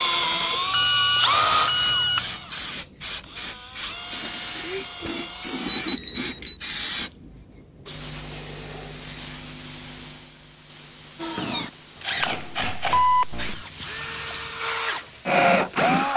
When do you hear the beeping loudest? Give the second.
6 s.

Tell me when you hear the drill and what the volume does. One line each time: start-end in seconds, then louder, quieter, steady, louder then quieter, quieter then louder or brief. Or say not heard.
0.0-7.1 quieter
11.2-16.1 quieter then louder.